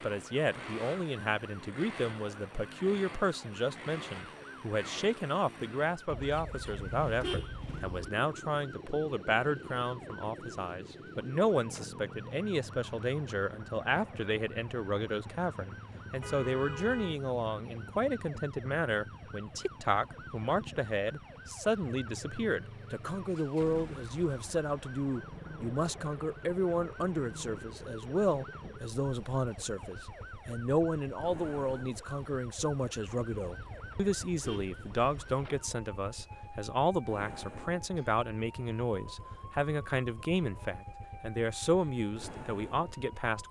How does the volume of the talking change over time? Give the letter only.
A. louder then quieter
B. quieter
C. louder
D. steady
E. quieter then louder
D.